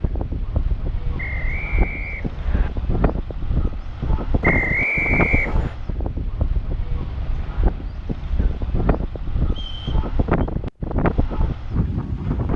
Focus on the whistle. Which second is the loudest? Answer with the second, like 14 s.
5 s.